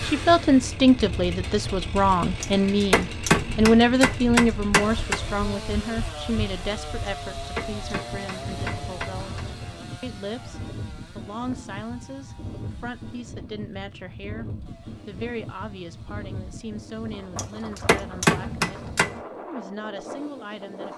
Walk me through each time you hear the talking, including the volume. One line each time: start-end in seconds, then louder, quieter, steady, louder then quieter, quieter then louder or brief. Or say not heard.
0.0-20.9 quieter.